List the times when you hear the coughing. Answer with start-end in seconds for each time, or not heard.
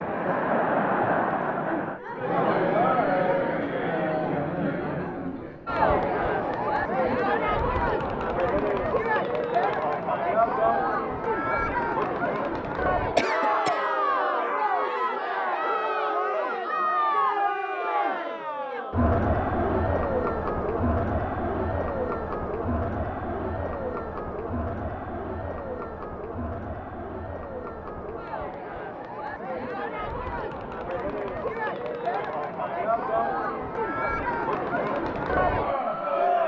13.2-13.8.